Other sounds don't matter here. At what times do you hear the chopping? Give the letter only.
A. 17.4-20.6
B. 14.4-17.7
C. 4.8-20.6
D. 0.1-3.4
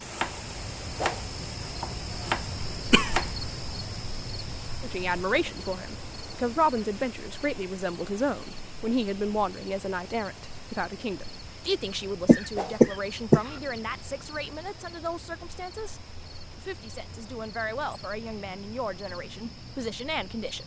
D.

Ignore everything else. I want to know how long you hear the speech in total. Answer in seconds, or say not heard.
16 s.